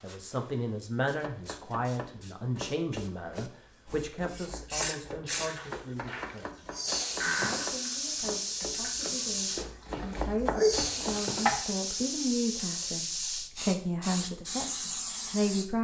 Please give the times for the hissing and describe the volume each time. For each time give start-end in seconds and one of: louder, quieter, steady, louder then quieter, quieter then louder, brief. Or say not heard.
0.0-15.7 louder.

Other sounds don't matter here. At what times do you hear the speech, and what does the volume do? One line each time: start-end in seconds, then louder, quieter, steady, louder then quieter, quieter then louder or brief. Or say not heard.
0.0-6.7 quieter
7.2-15.7 louder.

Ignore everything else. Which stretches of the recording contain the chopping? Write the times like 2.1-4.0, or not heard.
1.2-11.7.